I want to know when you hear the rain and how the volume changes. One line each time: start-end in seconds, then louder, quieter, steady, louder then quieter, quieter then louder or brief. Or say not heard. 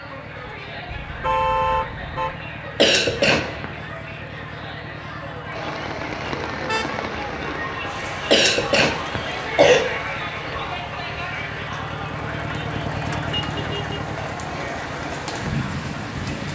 5.5-16.4 quieter then louder.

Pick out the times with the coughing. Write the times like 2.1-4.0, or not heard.
2.8-3.7, 8.3-9.8.